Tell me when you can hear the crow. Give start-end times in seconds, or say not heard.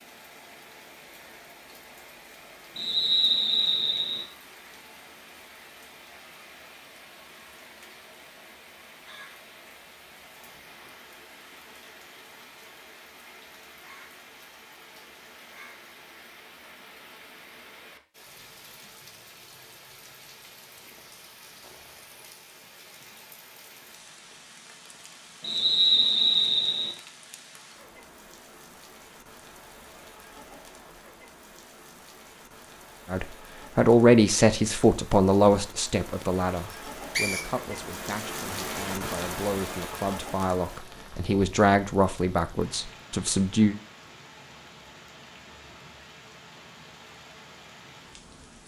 not heard.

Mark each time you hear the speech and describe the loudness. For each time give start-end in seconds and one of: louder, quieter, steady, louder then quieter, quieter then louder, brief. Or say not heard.
33.1-43.8 quieter then louder.